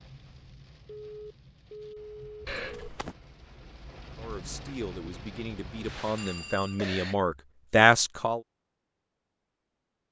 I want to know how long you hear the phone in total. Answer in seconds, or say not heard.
3 s.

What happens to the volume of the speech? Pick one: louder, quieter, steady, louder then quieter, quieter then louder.
louder.